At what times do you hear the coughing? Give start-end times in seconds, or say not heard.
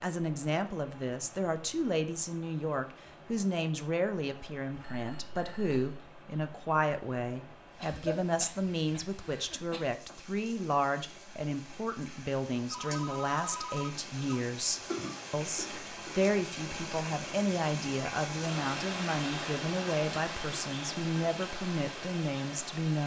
7.8-9.8, 14.9-16.2.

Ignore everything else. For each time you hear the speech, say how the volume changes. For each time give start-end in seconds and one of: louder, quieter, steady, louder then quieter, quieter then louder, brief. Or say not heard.
0.0-23.0 steady.